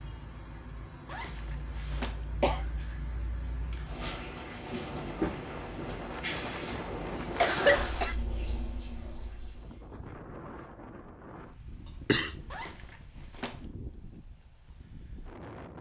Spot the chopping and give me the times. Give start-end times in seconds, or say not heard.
not heard.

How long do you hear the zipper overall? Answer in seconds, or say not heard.
3 s.